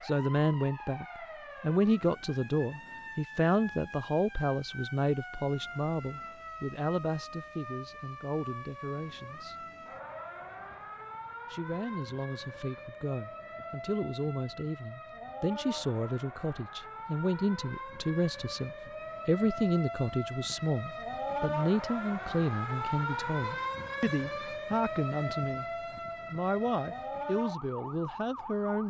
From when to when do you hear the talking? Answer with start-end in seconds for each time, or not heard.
0.0-9.6, 11.5-25.6, 26.3-28.8.